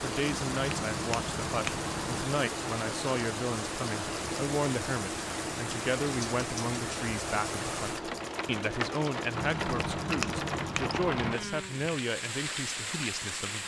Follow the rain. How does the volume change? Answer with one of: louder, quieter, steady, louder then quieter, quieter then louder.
steady.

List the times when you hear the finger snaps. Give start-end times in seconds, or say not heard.
0.3-2.2, 9.3-11.3.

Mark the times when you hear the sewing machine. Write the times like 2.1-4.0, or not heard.
0.1-10.8.